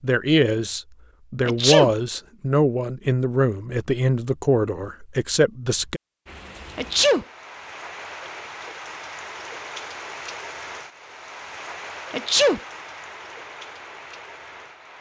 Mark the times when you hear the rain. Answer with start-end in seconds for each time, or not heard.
6.2-14.9.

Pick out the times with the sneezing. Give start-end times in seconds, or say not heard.
1.4-1.9, 6.8-7.2, 12.1-12.6.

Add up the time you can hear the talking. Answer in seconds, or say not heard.
6 s.